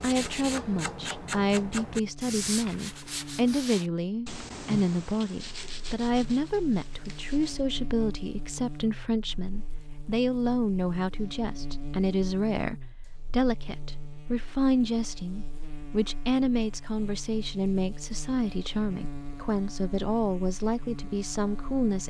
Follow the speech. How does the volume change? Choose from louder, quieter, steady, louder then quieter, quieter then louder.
steady.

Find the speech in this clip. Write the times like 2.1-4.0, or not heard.
0.0-22.0.